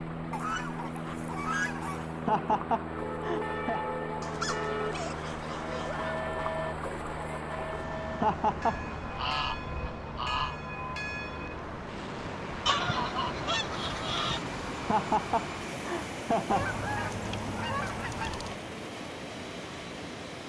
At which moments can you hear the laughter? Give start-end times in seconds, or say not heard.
2.1-3.8, 8.1-8.8, 14.8-16.7.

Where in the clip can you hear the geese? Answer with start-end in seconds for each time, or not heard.
0.3-2.3, 4.2-6.2, 8.7-10.6, 12.7-14.4, 16.5-18.6.